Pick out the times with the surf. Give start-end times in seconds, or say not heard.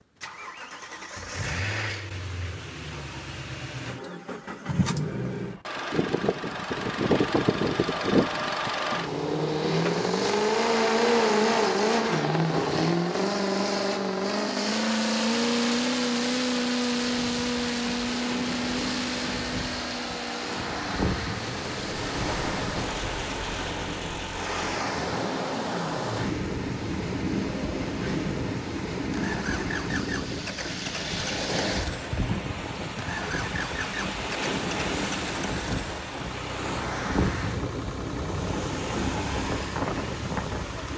16.9-40.9.